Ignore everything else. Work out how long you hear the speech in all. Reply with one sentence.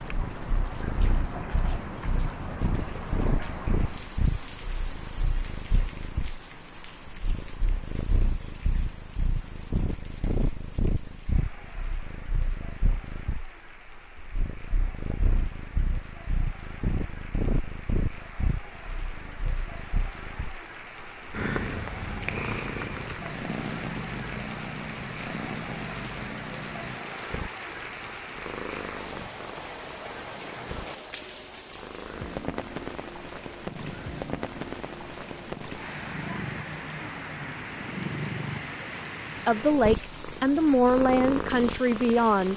The speech can be heard for 3 seconds in total.